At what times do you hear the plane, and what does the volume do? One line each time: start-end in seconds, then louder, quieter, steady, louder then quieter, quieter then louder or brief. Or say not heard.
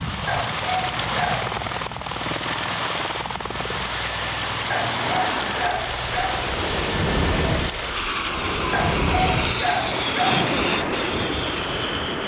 0.0-12.2 steady.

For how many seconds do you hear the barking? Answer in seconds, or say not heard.
5 s.